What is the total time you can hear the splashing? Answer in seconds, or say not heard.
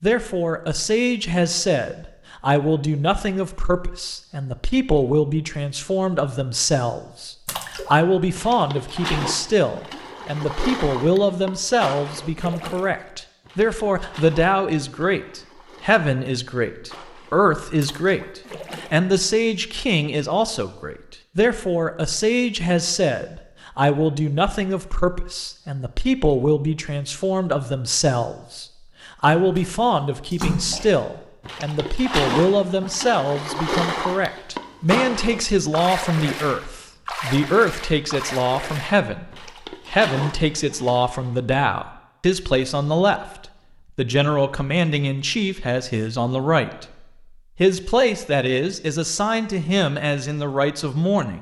24 s.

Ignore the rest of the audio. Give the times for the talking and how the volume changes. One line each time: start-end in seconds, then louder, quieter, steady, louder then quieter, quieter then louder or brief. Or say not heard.
0.0-51.3 steady.